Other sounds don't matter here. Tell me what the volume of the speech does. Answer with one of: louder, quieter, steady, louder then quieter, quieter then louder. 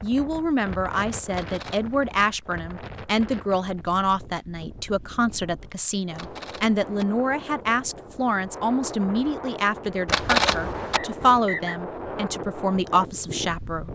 steady.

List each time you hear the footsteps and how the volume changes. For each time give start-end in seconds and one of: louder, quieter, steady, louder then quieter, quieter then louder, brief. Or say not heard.
not heard.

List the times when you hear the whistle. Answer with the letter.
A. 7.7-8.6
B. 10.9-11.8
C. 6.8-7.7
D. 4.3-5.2
B.